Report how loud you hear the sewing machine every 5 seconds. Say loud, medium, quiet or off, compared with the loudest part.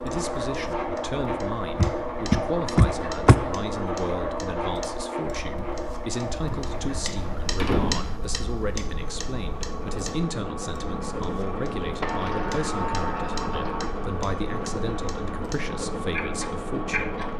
loud, medium, loud, loud.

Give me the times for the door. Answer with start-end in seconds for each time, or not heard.
1.8-3.4, 6.5-8.2, 12.0-13.9.